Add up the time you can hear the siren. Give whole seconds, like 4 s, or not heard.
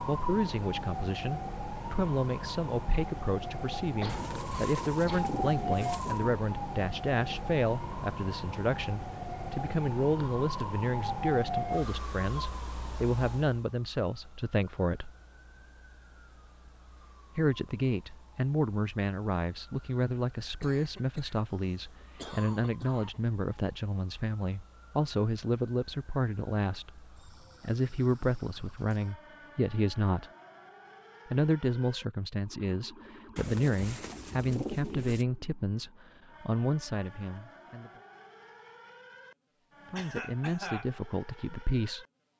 42 s.